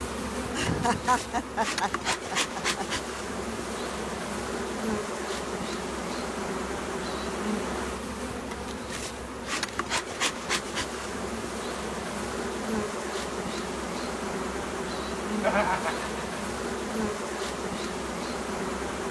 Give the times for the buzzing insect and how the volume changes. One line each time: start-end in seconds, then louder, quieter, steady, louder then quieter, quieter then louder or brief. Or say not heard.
0.0-19.0 steady.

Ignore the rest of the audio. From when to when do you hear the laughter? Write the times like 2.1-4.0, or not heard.
0.5-2.9, 15.4-16.4.